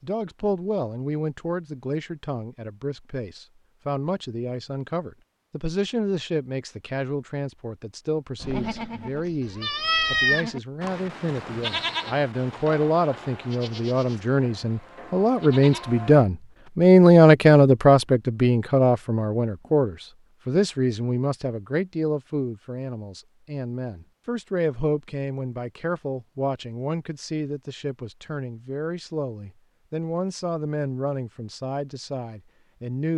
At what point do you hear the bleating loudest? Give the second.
10 s.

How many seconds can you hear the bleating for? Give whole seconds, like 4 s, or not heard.
8 s.